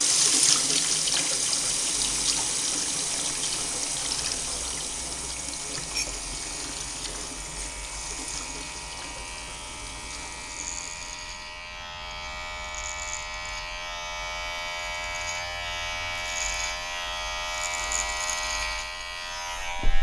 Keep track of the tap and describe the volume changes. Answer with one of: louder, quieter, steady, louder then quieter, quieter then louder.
quieter.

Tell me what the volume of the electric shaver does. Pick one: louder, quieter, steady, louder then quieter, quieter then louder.
louder.